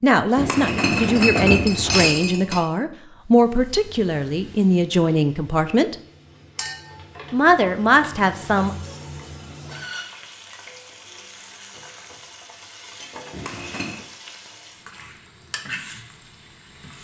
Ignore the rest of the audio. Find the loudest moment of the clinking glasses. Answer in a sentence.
The volume of the clinking glasses peaks at 1 second.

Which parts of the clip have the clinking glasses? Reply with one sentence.
The clinking glasses can be heard from 0.3 to 2.6 s, from 6.5 to 7.0 s and from 13.3 to 14.0 s.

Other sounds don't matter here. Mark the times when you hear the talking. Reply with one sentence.
The talking can be heard from 0.0 to 6.0 s and from 7.3 to 8.8 s.